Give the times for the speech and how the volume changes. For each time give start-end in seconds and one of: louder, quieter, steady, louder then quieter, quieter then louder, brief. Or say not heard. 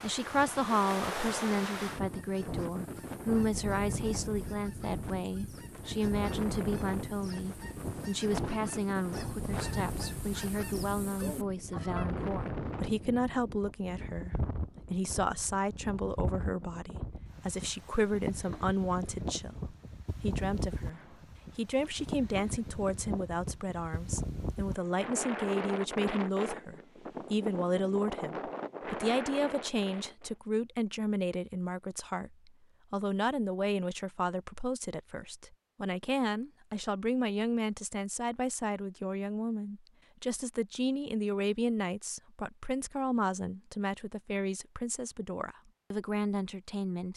0.0-47.1 steady.